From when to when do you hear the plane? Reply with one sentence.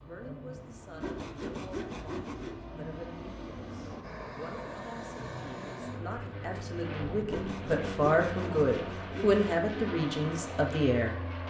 You can hear the plane from 0.0 to 11.4 s.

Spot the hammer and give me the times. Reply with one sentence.
The hammer can't be heard in this clip.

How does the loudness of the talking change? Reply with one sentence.
The volume of the talking goes up.